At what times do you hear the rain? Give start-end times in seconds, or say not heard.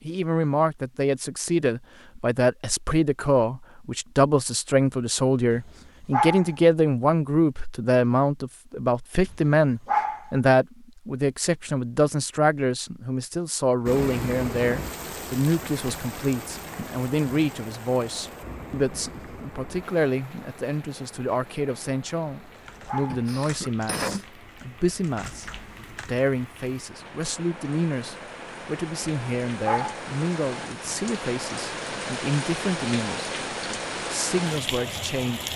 13.8-35.5.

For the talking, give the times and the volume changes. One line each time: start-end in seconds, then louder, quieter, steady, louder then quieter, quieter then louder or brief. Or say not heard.
0.1-33.3 quieter
34.1-35.5 brief.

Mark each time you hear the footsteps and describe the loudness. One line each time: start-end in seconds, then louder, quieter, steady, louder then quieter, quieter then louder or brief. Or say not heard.
not heard.